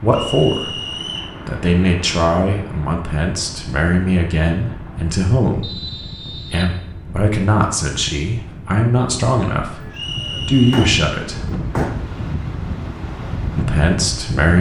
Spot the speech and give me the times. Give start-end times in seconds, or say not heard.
0.0-0.7, 1.4-11.5, 13.6-14.5.